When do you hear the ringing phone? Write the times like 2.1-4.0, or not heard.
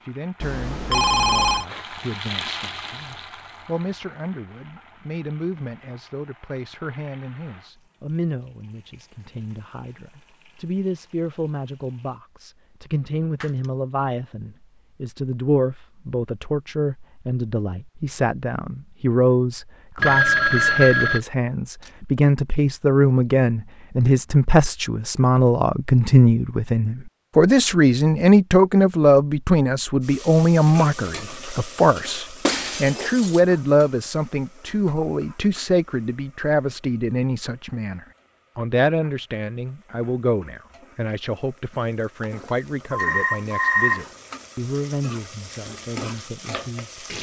0.4-1.6, 19.9-21.2, 42.2-44.0.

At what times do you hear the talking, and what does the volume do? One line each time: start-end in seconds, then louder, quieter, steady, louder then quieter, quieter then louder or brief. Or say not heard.
0.1-47.0 louder then quieter.